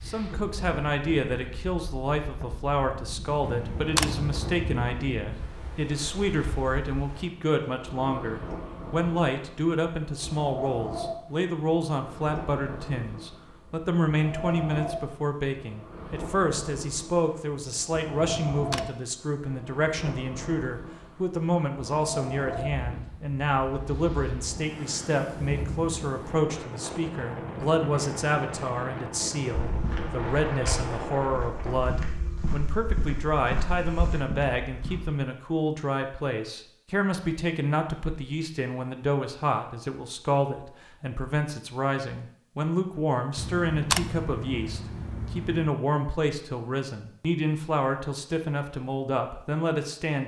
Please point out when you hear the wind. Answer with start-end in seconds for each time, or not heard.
0.0-31.9.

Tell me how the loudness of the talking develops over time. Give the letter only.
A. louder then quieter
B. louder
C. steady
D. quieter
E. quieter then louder
C.